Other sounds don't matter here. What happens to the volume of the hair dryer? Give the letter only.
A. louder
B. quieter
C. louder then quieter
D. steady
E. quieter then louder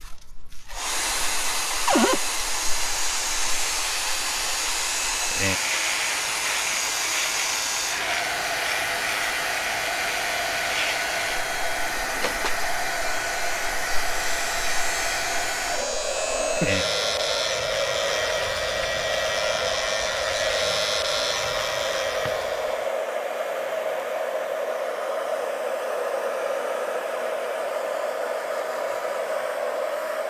D.